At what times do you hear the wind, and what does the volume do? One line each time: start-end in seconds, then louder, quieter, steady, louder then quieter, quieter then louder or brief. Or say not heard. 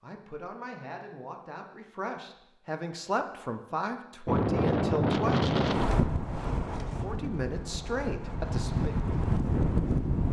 4.2-10.2 quieter then louder.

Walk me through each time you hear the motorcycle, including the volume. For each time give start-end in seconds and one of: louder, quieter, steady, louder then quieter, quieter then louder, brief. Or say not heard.
not heard.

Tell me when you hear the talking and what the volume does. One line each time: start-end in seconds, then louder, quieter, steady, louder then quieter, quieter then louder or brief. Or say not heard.
0.0-5.5 louder
6.8-8.9 brief.